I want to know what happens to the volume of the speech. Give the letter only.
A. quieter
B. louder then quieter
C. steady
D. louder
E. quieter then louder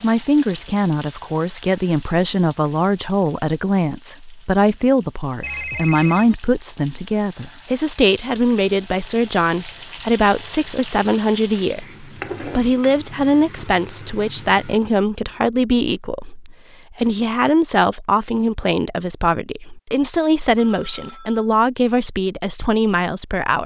C.